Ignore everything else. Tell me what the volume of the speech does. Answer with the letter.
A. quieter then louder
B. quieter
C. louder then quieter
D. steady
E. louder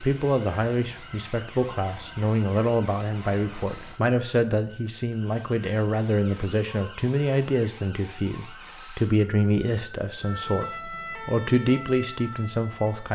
D.